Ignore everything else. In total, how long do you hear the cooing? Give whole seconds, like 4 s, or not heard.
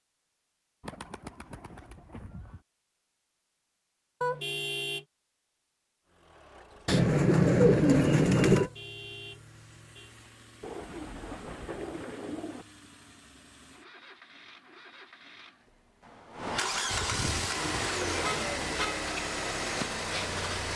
8 s.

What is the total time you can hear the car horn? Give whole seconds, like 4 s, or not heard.
3 s.